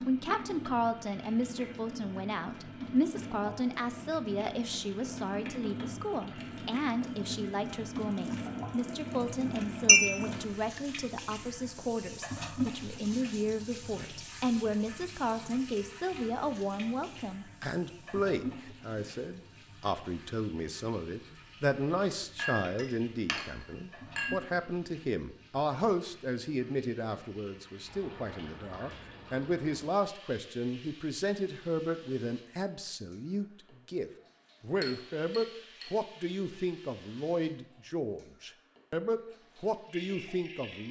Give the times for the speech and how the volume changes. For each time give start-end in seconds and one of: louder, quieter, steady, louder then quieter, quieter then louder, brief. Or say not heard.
0.0-40.8 steady.